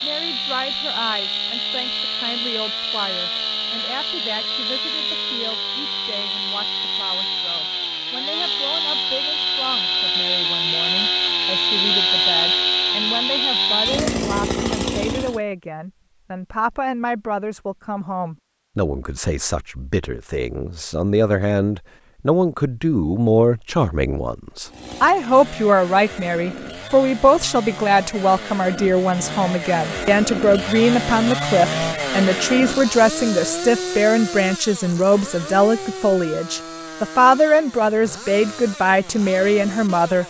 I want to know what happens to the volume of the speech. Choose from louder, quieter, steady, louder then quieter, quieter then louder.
louder.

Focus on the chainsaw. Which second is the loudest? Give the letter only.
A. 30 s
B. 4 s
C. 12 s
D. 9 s
C.